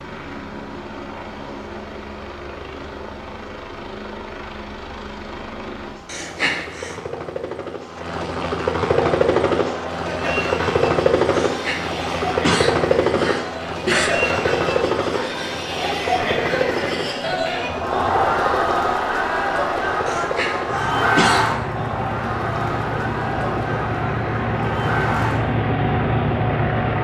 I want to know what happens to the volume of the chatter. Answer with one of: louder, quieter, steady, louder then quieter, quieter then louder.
louder then quieter.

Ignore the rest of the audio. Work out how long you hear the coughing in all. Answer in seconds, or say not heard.
5 s.